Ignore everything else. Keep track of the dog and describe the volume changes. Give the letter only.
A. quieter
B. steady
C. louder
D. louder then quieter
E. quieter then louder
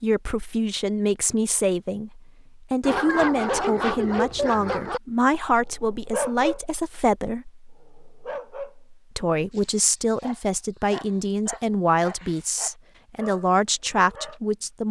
A.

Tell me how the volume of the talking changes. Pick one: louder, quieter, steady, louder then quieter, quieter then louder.
steady.